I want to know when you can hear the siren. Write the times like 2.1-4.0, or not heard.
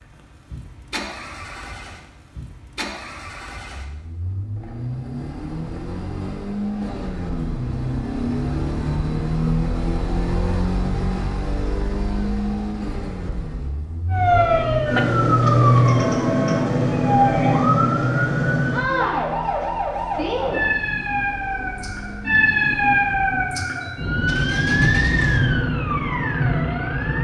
14.1-27.1.